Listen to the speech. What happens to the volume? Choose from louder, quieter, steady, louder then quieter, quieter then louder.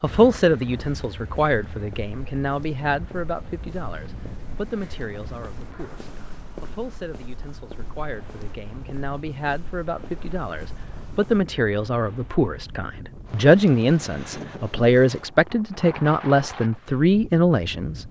quieter then louder.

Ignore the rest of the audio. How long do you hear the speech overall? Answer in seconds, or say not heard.
18 s.